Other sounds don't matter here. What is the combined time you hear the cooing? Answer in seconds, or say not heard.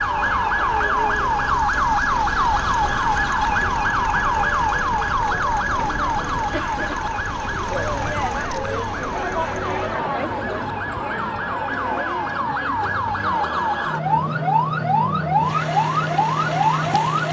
not heard.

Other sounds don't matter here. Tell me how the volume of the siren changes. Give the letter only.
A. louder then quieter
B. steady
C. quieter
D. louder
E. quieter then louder
E.